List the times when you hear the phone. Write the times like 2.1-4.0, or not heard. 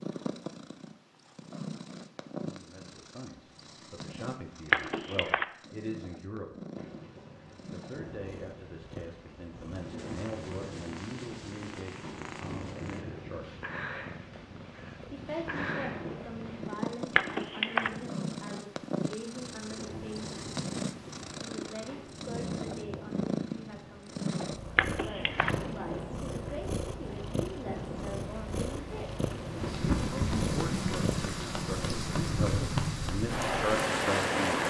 4.7-5.5, 17.1-17.9, 24.8-25.5.